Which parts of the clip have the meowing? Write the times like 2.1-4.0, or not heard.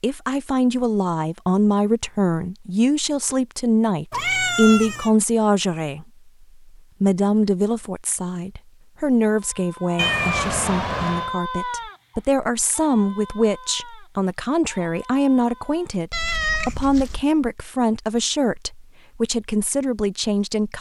4.1-5.1, 9.9-11.3, 16.1-17.2.